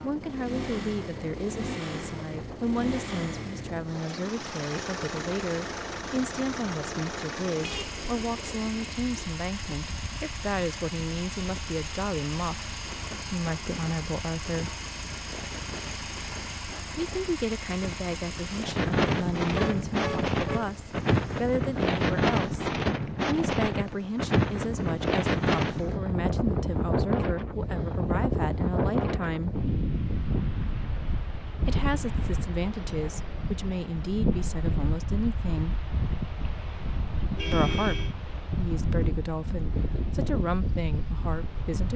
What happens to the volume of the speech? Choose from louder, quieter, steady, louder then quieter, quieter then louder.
steady.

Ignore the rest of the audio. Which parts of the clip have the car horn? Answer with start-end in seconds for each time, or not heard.
7.5-7.9, 19.5-20.8, 37.4-38.1.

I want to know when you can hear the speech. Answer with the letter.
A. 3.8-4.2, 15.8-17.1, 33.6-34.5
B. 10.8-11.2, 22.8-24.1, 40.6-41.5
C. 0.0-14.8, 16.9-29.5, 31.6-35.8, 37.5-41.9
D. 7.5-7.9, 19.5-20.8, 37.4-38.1
C.